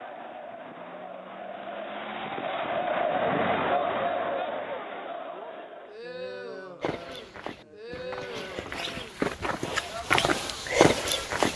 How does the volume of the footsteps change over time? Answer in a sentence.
The loudness of the footsteps goes up.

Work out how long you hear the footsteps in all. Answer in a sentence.
The footsteps can be heard for 5 seconds in total.